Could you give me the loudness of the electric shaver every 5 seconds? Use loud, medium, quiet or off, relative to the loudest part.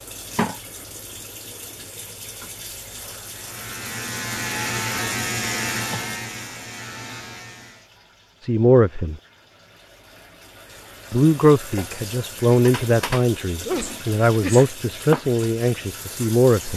loud, loud, off, off.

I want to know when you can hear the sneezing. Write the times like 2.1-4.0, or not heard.
13.7-14.8.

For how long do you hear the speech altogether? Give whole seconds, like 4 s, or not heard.
6 s.